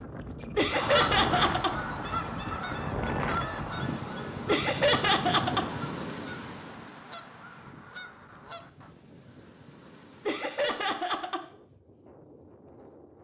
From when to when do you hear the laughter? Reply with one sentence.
You can hear the laughter from 0.6 to 1.8 s, from 4.5 to 5.7 s and from 10.2 to 11.4 s.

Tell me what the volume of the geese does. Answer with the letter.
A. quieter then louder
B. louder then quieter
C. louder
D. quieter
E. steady
D.